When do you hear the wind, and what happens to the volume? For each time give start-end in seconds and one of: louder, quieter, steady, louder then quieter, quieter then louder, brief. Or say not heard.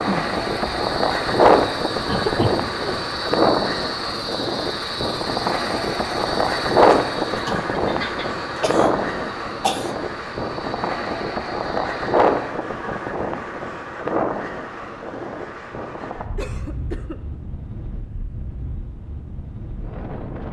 0.0-20.4 quieter.